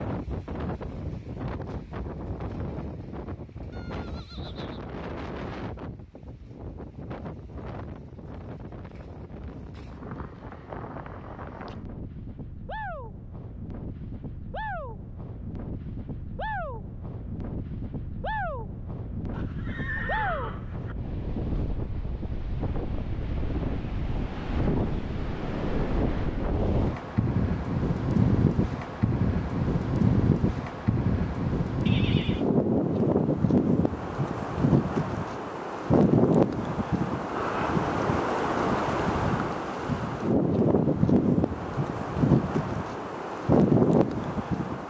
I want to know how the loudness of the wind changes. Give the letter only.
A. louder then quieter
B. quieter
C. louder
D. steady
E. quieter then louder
C.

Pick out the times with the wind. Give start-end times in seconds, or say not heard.
0.0-44.8.